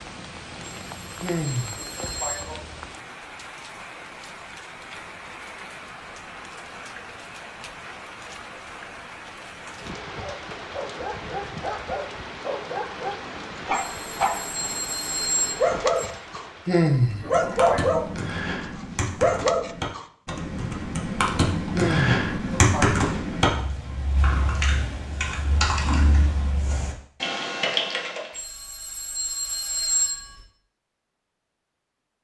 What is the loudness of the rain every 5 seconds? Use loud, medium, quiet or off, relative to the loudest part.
loud, loud, loud, loud, off, off, off.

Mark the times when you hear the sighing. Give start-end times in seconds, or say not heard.
1.2-2.6, 16.6-18.1, 21.7-22.9.